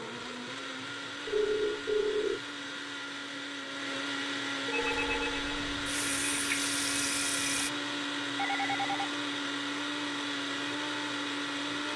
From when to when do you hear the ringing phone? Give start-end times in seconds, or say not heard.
1.2-2.4, 4.7-5.6, 8.3-8.9.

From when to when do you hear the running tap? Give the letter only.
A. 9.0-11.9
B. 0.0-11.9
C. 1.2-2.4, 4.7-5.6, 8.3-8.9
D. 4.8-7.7
D.